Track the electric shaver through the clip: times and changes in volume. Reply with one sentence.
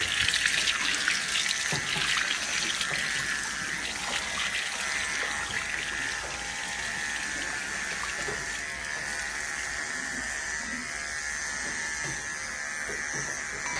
You can hear the electric shaver from 0.0 to 13.7 s, at a steady volume.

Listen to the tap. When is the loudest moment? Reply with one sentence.
The volume of the tap peaks at 1 second.